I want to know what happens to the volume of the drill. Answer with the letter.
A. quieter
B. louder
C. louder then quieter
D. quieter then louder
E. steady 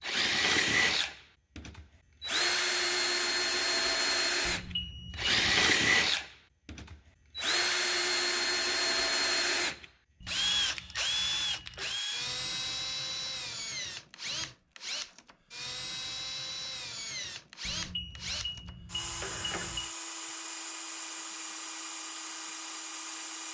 A.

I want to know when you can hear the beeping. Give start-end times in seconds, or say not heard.
4.5-5.7, 10.2-12.0, 17.6-19.9.